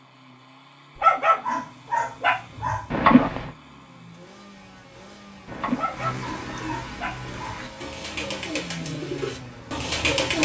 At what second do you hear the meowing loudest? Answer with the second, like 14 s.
3 s.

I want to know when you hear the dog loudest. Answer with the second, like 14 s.
1 s.